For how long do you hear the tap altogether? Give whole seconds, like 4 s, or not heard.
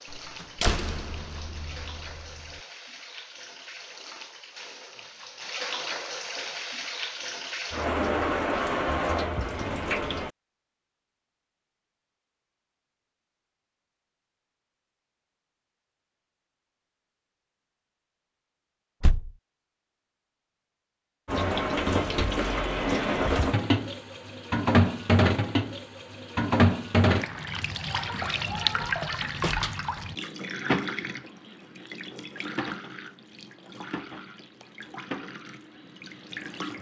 26 s.